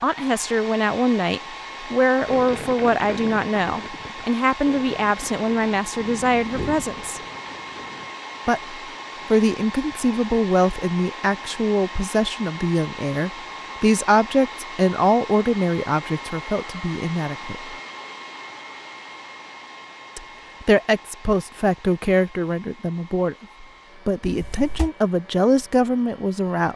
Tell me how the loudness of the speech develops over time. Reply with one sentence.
The volume of the speech stays about the same.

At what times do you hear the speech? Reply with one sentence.
You can hear the speech from 0.0 to 7.2 s, from 8.4 to 17.8 s and from 20.1 to 26.7 s.